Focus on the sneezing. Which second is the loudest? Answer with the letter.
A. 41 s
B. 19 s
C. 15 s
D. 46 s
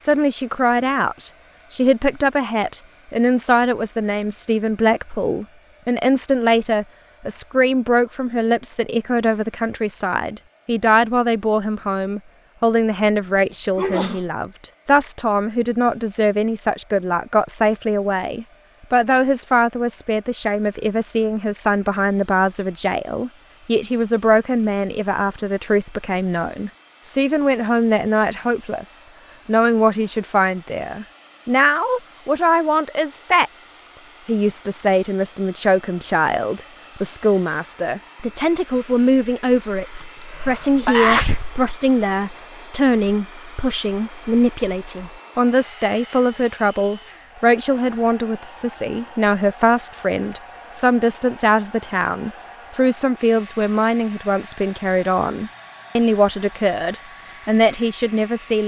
A.